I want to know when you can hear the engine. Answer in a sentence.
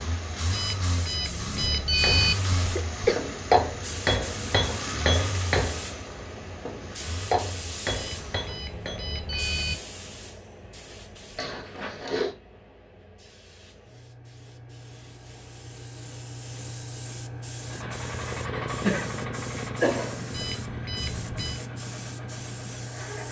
You can hear the engine from 0.0 to 8.5 s and from 17.6 to 23.2 s.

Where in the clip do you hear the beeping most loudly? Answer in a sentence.
The loudest moment of the beeping is at 2 seconds.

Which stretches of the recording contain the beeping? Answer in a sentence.
The beeping can be heard from 0.5 to 2.4 s, from 7.9 to 9.8 s and from 20.3 to 21.6 s.